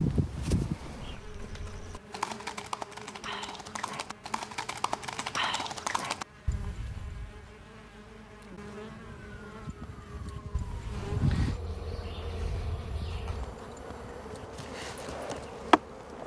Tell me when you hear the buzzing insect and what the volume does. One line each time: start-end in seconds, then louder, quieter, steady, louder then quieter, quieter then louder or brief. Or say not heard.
0.0-16.2 quieter then louder.